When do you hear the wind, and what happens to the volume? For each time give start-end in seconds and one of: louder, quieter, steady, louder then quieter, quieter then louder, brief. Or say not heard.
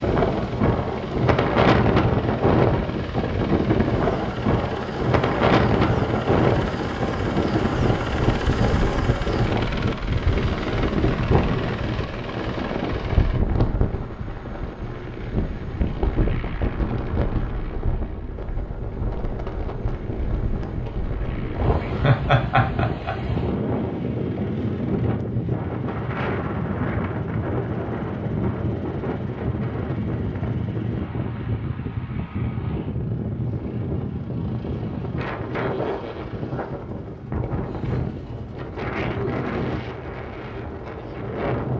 0.0-41.7 quieter.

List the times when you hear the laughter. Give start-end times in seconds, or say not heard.
21.9-23.1.